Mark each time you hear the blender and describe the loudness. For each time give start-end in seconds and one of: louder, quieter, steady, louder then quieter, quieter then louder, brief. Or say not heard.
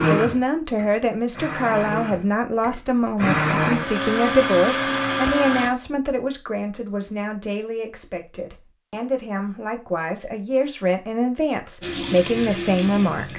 0.0-5.7 louder.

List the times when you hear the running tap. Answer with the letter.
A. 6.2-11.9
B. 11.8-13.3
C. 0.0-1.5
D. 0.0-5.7
B.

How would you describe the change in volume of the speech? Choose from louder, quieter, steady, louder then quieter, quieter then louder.
quieter then louder.